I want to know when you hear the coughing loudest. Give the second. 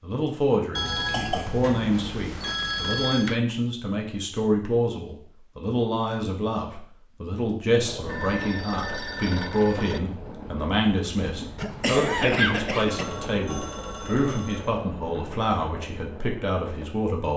12 s.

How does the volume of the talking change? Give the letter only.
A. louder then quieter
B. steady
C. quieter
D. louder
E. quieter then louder
B.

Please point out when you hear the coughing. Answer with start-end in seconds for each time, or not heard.
0.8-2.0, 11.6-13.1.